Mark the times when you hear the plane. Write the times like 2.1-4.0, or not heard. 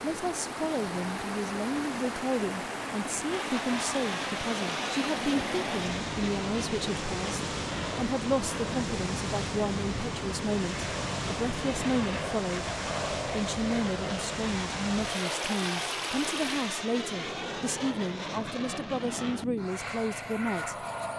3.3-21.1.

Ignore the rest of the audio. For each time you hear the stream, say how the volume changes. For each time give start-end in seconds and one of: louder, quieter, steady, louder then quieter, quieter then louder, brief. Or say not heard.
0.0-16.8 steady.